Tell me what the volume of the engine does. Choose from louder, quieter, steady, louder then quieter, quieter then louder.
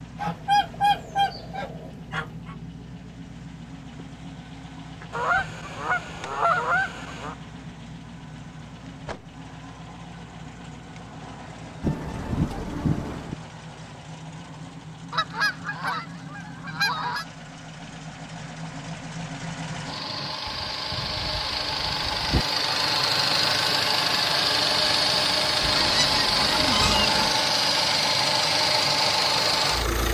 louder.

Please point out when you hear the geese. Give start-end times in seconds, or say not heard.
0.1-2.5, 5.1-7.3, 11.8-13.3, 15.1-17.2, 20.4-22.4, 25.6-27.4.